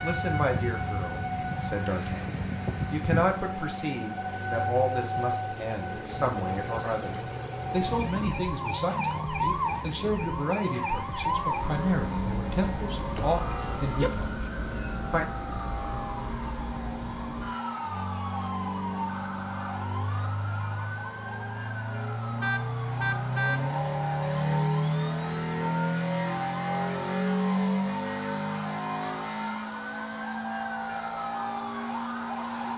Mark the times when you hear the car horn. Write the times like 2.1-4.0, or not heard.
13.2-14.1, 22.4-23.6.